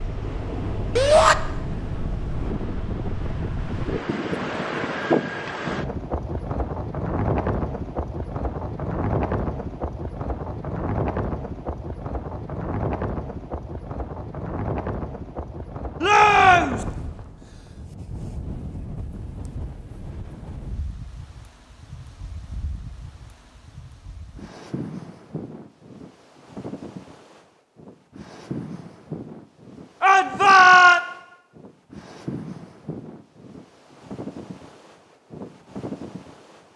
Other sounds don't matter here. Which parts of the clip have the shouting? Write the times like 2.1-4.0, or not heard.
0.9-1.4, 16.0-16.9, 30.0-31.0.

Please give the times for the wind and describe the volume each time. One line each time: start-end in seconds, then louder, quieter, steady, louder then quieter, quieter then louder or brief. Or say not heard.
0.0-36.7 quieter.